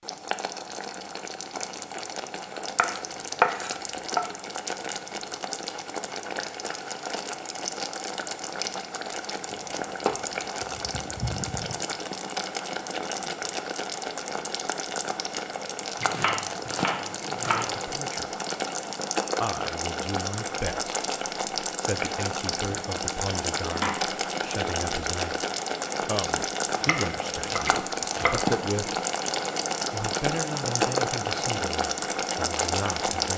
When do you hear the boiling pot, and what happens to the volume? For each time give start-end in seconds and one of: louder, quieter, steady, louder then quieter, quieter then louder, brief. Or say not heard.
0.0-33.3 louder.